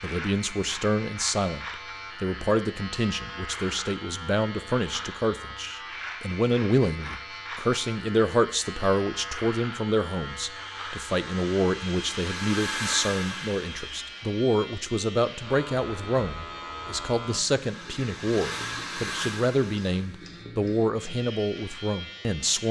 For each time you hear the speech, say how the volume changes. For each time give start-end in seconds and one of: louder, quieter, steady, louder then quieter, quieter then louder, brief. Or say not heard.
0.0-22.6 steady.